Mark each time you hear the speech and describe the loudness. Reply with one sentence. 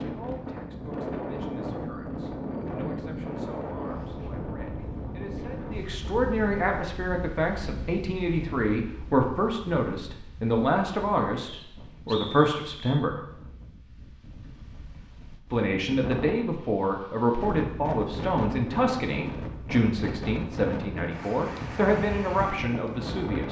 The speech can be heard from 0.0 to 13.2 s, getting louder; and from 15.5 to 23.4 s, at a steady volume.